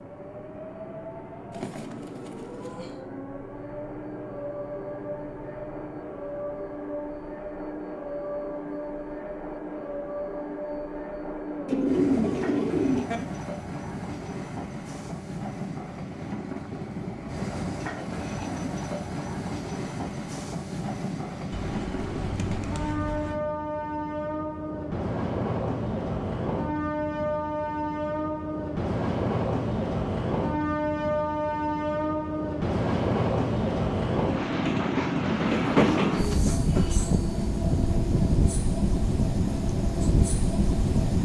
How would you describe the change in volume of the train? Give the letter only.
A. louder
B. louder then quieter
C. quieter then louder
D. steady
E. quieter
A.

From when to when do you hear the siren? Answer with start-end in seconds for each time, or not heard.
not heard.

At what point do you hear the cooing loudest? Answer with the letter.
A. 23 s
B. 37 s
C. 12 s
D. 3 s
C.